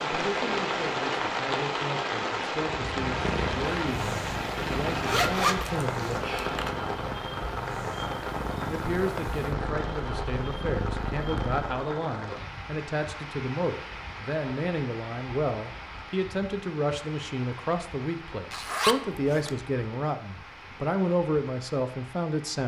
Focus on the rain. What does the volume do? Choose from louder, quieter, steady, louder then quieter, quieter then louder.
quieter.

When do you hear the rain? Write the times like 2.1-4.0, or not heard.
0.0-22.6.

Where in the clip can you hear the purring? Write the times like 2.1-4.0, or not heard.
2.7-11.8.